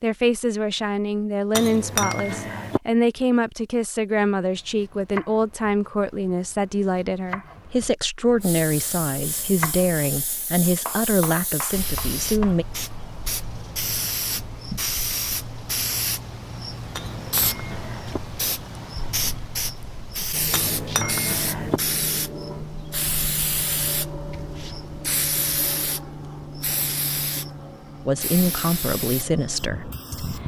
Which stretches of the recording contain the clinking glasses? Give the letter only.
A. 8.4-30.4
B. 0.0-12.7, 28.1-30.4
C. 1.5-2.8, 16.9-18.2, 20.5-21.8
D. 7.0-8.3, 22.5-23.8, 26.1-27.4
C.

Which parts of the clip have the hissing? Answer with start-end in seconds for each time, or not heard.
8.4-30.4.